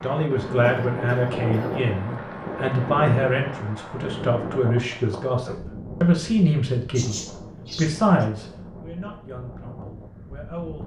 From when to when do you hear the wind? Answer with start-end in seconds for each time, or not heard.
0.0-10.8.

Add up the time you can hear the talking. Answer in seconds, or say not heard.
11 s.